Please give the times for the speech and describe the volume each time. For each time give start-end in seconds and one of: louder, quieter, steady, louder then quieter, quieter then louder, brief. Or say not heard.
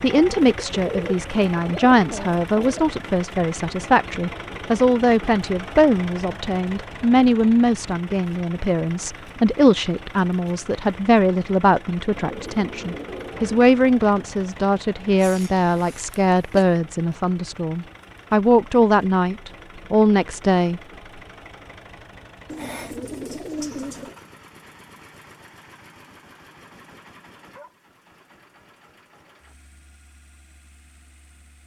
0.0-20.8 steady.